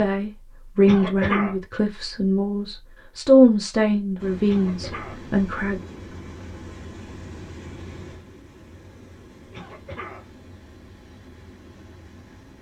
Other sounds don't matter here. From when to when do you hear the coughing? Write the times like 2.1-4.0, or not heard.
0.8-1.6, 4.5-5.2, 9.5-10.3.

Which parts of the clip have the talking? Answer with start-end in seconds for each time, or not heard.
0.0-5.8.